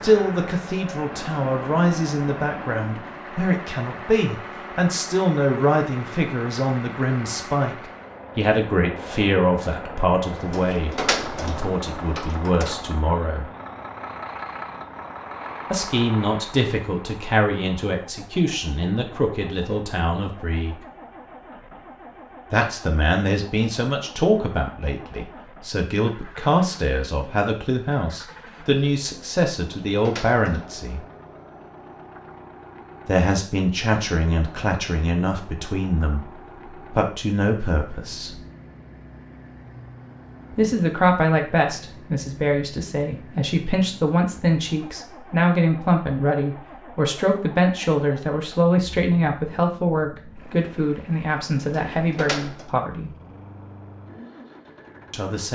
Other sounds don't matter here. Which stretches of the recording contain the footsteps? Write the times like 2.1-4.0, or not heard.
not heard.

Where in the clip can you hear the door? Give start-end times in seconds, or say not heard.
10.3-12.8, 29.6-30.9, 51.6-52.7.